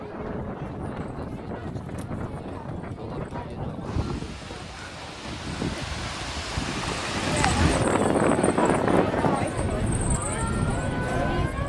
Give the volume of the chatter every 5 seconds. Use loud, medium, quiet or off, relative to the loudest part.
quiet, loud, loud.